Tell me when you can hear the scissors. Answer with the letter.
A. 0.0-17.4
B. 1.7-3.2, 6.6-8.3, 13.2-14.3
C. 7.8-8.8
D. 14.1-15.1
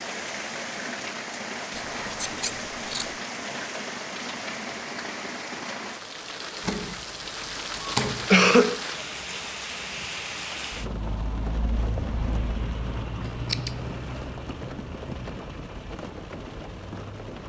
B.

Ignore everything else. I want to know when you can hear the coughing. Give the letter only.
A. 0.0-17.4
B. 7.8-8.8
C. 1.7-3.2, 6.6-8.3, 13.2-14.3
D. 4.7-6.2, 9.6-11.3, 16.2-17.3
B.